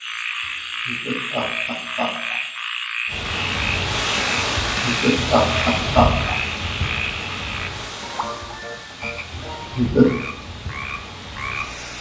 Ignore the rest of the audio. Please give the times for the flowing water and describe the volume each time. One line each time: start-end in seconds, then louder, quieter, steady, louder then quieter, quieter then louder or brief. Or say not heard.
3.0-11.9 quieter.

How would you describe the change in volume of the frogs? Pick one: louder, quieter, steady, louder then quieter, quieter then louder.
quieter.